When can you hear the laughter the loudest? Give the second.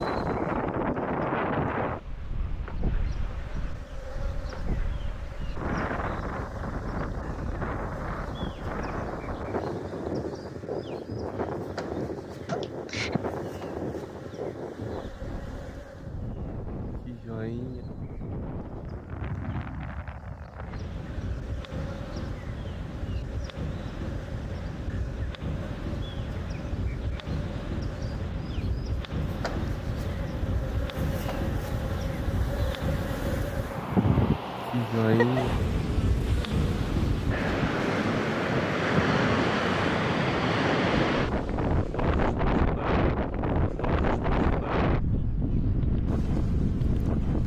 35 s.